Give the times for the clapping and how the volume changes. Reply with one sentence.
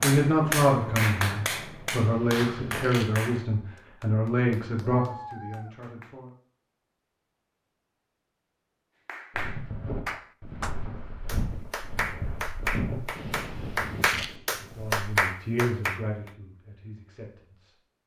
The clapping can be heard from 0.0 to 6.2 s, getting quieter then louder; and from 9.1 to 16.4 s, getting louder.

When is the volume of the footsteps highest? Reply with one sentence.
The loudest moment of the footsteps is at 13 seconds.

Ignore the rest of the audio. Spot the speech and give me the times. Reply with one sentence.
You can hear the speech from 0.0 to 6.3 s and from 14.6 to 17.8 s.